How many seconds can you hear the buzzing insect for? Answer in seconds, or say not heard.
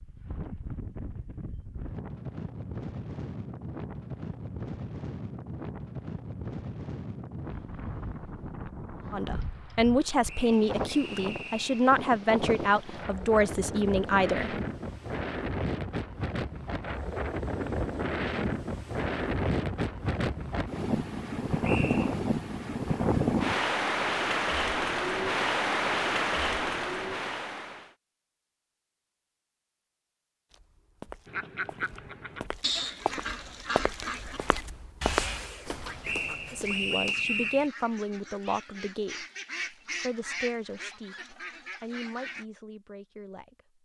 not heard.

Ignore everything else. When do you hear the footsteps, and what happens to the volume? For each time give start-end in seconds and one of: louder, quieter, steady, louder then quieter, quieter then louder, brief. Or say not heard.
30.5-37.1 louder then quieter.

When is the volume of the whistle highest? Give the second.
37 s.